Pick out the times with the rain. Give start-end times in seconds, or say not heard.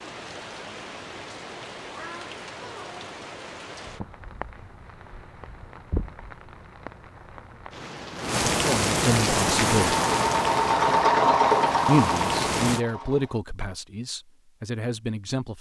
0.0-12.8.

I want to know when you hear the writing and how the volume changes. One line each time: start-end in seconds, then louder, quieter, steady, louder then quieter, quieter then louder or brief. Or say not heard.
not heard.